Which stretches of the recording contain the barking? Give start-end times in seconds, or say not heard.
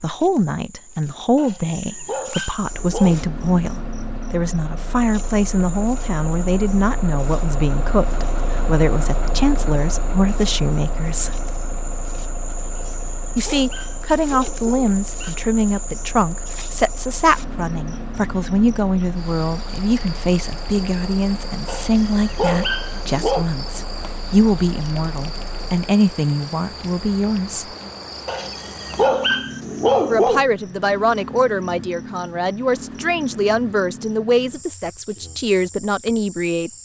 1.4-3.3, 12.7-15.3, 21.6-23.4, 28.2-30.4.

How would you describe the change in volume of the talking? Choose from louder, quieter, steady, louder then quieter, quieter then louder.
steady.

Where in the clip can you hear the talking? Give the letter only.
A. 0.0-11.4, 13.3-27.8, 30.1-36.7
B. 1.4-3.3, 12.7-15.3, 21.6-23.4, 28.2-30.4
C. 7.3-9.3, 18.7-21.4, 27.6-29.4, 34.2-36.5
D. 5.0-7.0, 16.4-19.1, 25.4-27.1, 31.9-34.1
A.